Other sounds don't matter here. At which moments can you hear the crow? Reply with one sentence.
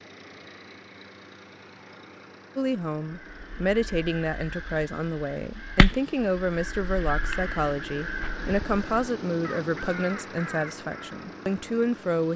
You can hear the crow from 3.0 to 11.2 s.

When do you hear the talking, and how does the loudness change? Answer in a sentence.
You can hear the talking from 2.5 to 12.3 s, at a steady volume.